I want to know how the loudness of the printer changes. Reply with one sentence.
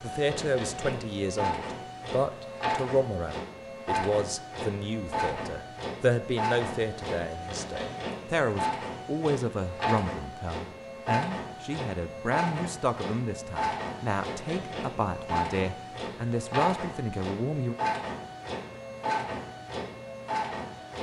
The volume of the printer stays about the same.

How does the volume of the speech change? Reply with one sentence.
The loudness of the speech stays about the same.